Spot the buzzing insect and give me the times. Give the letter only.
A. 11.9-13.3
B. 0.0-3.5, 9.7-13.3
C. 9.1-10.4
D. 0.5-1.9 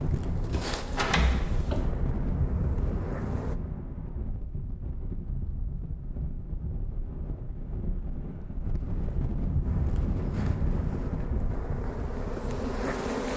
B.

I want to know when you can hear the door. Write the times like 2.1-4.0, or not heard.
0.5-1.9.